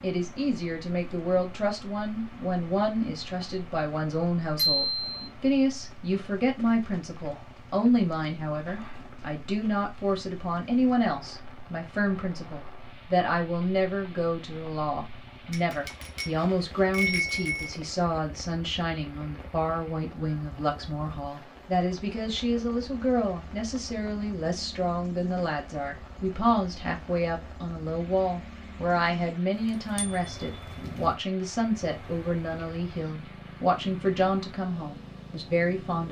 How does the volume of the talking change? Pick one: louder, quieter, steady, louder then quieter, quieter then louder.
steady.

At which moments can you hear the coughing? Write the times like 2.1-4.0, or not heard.
not heard.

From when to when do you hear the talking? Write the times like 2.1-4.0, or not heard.
0.0-36.0.